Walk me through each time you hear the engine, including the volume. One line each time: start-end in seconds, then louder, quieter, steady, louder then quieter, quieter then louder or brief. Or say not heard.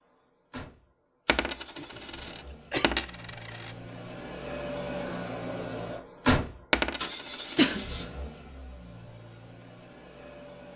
0.0-10.7 louder then quieter.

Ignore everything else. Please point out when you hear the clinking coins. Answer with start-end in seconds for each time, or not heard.
1.2-3.8, 6.7-7.8.